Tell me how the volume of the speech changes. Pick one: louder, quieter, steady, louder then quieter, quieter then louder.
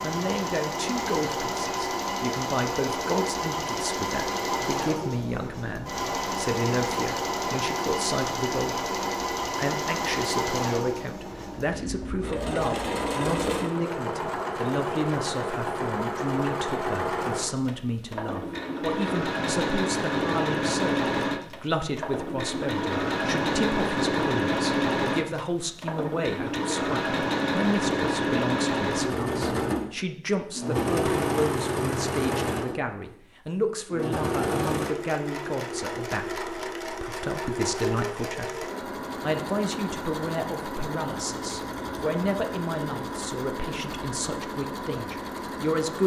steady.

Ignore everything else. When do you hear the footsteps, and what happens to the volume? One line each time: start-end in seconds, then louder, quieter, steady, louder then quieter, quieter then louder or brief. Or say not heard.
not heard.